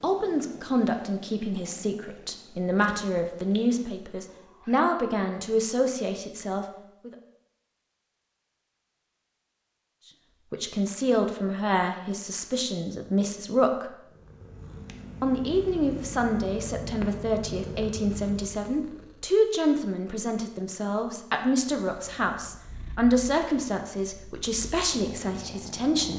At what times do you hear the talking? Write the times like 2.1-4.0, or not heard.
0.0-7.2, 10.5-13.9, 15.2-26.1.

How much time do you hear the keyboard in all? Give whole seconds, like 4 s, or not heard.
not heard.